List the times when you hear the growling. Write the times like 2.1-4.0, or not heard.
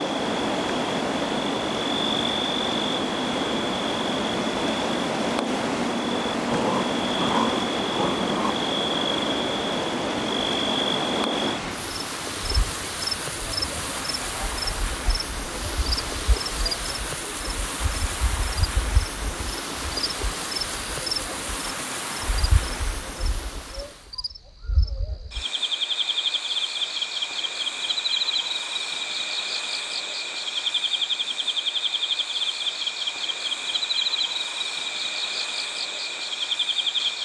6.5-8.6.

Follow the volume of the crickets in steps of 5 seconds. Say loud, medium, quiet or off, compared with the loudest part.
loud, loud, loud, medium, medium, loud, loud, loud.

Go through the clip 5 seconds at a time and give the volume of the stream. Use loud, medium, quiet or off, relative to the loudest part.
loud, loud, loud, loud, loud, off, off, off.